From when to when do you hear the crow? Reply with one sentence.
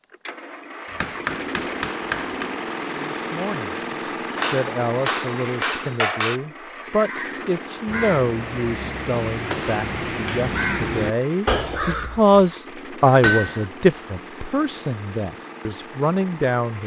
The crow can be heard from 6.8 to 12.5 s.